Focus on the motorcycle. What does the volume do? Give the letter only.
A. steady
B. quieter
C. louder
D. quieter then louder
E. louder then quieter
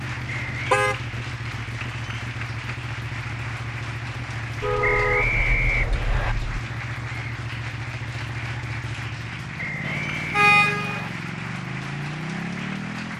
A.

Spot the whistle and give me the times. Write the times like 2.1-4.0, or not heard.
0.2-0.7, 4.8-6.3, 9.6-11.1.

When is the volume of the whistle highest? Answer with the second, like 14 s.
5 s.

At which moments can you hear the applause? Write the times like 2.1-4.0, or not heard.
0.0-13.1.